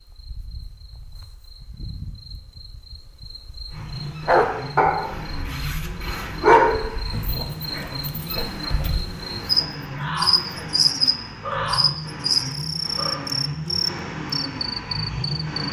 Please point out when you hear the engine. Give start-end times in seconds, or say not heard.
3.6-15.6.